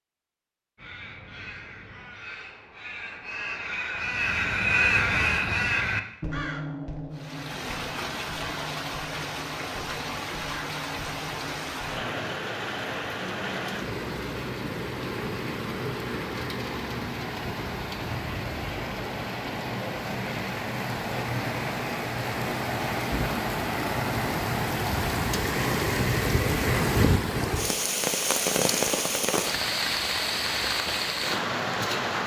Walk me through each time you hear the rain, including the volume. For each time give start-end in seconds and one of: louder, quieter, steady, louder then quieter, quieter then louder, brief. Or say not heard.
7.1-32.2 louder.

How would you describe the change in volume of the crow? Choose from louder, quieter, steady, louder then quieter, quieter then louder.
louder then quieter.